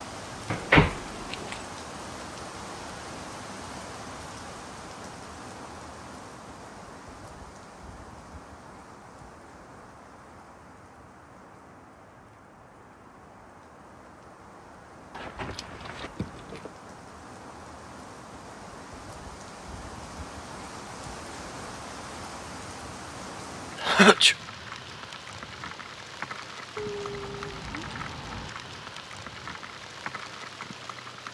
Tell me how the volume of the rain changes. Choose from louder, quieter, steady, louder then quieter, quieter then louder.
quieter then louder.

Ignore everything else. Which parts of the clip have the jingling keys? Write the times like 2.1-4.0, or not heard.
0.5-1.6, 15.1-16.7, 26.8-28.8.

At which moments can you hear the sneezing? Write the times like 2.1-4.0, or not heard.
23.8-24.4.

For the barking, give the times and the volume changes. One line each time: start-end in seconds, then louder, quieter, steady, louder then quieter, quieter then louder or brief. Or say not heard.
not heard.